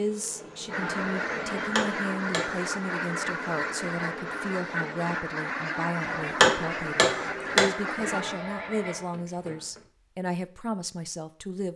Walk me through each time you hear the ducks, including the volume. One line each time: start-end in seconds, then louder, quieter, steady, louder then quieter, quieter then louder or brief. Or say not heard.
0.7-8.2 steady.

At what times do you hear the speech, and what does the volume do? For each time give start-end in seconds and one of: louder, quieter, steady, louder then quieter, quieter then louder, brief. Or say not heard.
0.0-11.7 steady.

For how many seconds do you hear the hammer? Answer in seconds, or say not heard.
3 s.